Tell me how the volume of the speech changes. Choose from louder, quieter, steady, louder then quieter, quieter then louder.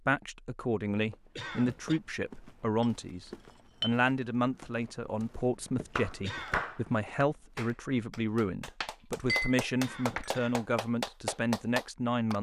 steady.